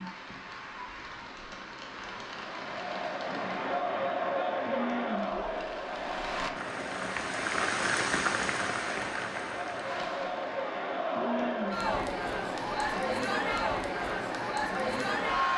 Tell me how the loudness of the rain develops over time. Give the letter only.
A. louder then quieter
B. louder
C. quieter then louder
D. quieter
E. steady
A.